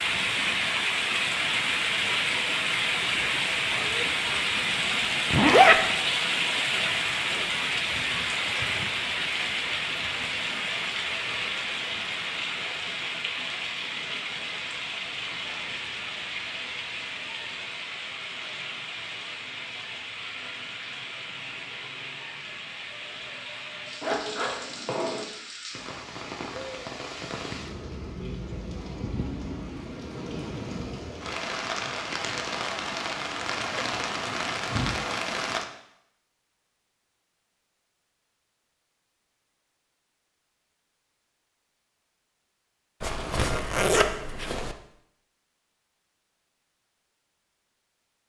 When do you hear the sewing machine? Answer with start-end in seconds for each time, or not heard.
not heard.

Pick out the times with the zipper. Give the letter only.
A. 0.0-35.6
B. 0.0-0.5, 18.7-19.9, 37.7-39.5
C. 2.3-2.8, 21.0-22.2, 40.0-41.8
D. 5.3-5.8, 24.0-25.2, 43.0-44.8
D.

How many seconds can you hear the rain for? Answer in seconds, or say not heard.
36 s.